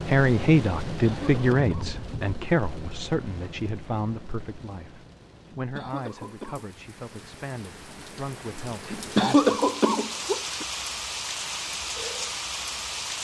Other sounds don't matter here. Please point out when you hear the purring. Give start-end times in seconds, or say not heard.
not heard.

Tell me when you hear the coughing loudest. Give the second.
9 s.